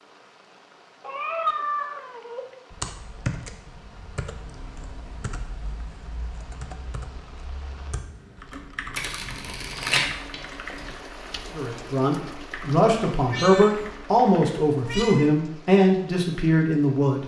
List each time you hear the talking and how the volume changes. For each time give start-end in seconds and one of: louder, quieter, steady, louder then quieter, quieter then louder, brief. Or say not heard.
11.6-17.2 steady.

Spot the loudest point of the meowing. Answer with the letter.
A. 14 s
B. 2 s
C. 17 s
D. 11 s
B.